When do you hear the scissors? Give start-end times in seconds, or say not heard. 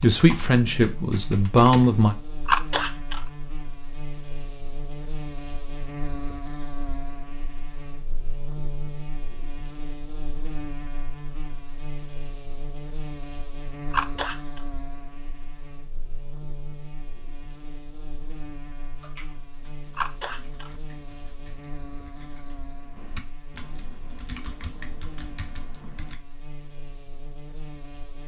2.5-3.2, 13.9-14.6, 19.9-20.7.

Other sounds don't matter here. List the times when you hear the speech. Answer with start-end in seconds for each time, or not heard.
0.0-2.1.